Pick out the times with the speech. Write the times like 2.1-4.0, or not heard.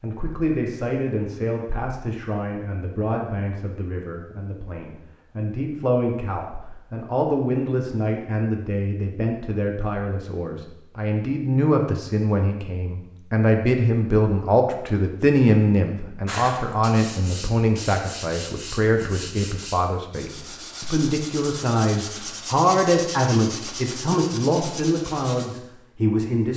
0.0-26.5.